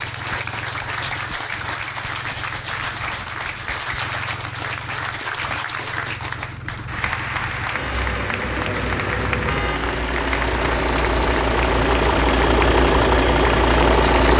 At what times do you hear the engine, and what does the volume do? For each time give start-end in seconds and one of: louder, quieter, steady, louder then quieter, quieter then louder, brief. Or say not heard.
0.0-14.3 louder.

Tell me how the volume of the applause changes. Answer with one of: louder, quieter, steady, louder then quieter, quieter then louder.
steady.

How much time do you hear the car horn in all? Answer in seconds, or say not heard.
2 s.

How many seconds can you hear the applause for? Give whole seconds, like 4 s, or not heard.
14 s.